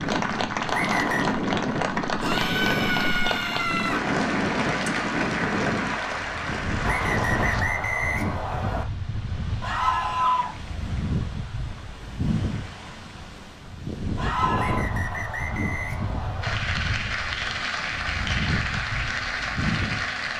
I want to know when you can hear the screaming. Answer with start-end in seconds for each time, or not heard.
2.2-4.0, 9.6-10.5, 14.2-14.8.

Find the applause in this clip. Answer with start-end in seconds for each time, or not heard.
0.0-7.7, 16.4-20.3.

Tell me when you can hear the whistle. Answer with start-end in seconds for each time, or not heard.
0.7-1.4, 6.8-8.8, 14.6-16.6.